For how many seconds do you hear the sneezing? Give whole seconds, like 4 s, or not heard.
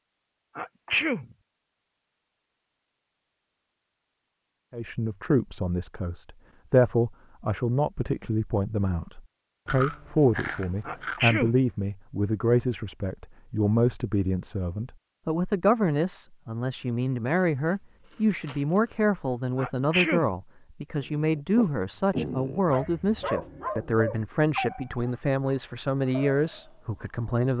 2 s.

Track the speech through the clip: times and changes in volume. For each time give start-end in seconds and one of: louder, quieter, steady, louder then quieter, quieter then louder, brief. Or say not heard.
4.7-27.5 steady.